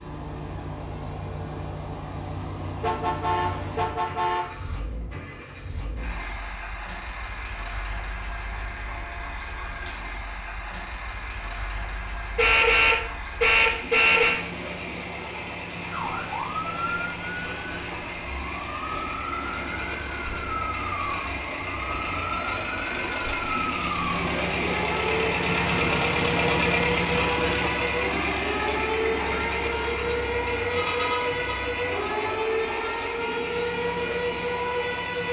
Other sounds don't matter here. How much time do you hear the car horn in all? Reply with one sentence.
You can hear the car horn for 5 seconds altogether.